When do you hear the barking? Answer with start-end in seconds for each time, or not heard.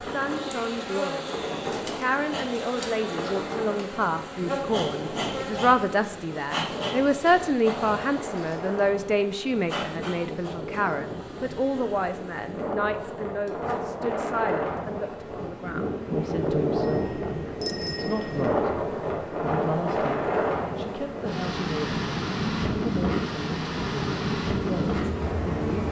not heard.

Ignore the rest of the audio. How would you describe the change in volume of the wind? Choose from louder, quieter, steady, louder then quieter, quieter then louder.
louder.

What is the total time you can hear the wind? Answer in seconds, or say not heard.
26 s.